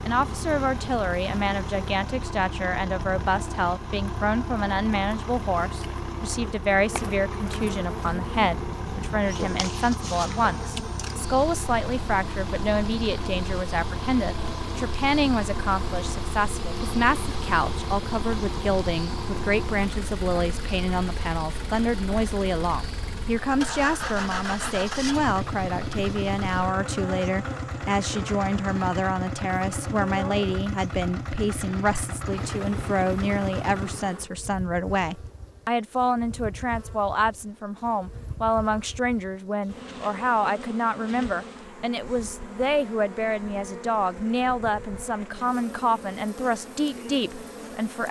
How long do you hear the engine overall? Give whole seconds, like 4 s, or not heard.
34 s.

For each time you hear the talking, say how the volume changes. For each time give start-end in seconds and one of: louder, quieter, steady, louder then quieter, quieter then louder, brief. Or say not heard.
0.0-48.0 steady.